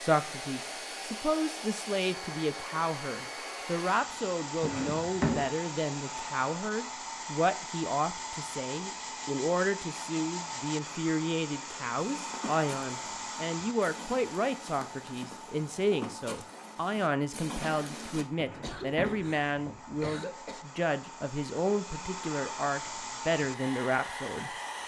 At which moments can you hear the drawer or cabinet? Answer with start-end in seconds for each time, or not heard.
4.6-5.5, 18.4-20.0.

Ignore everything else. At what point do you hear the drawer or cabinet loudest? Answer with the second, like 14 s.
5 s.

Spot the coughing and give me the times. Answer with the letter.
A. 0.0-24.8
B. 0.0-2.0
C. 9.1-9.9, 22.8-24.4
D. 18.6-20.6
D.